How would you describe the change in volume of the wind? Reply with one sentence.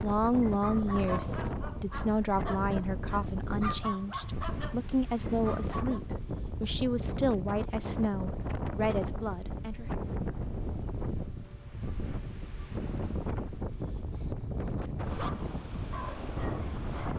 The volume of the wind stays about the same.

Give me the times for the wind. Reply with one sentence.
The wind can be heard from 0.0 to 17.1 s.